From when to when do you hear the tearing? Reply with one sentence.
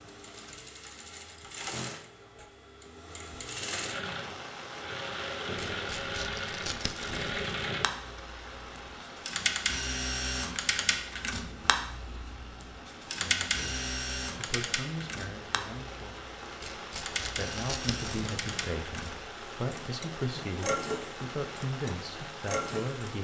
The tearing can be heard from 5.5 to 7.7 s and from 16.6 to 18.8 s.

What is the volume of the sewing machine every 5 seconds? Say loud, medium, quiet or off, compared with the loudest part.
medium, loud, loud, medium, loud.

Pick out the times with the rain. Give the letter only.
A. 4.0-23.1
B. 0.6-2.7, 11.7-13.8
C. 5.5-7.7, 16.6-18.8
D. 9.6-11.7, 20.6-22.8
A.